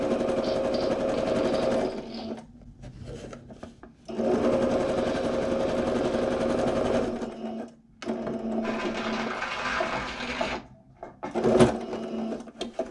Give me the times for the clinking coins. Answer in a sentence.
You can hear the clinking coins from 0.4 to 2.3 s, from 4.8 to 6.3 s and from 8.6 to 10.6 s.